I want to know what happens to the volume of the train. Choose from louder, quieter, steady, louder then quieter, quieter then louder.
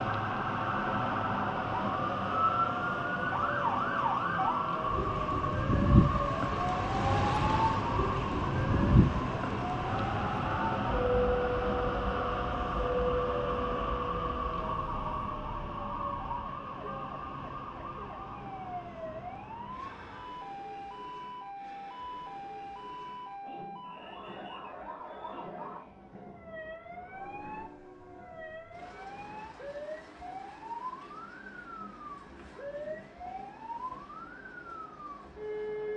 quieter.